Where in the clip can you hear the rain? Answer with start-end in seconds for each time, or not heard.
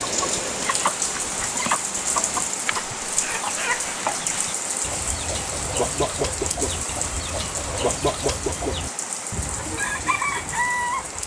0.0-11.2.